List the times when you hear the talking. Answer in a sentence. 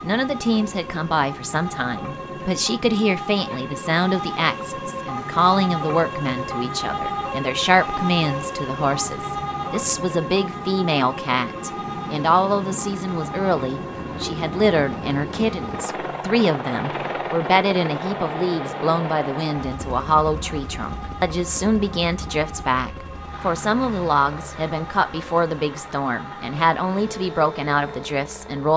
You can hear the talking from 0.0 to 28.7 s.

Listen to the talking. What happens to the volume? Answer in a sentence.
The volume of the talking stays about the same.